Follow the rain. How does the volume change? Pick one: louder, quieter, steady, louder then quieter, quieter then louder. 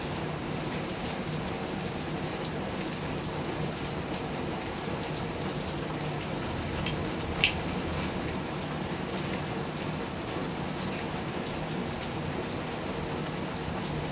steady.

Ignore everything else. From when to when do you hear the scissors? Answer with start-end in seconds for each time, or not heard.
6.3-8.1.